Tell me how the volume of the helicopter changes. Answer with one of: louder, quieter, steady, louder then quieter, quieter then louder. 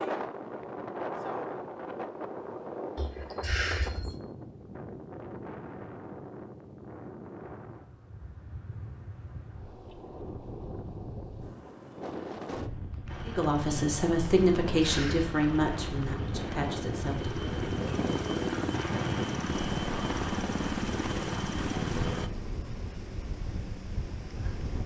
louder.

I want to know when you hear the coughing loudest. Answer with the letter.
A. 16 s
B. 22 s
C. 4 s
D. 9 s
C.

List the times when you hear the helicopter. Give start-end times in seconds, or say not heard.
13.1-22.3.